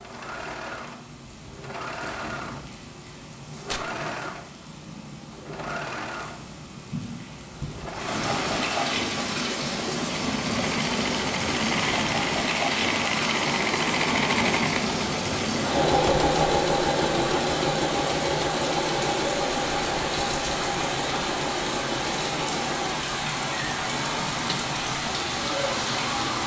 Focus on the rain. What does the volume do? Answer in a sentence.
The loudness of the rain goes up.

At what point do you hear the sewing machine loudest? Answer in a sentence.
The loudest moment of the sewing machine is at 16 seconds.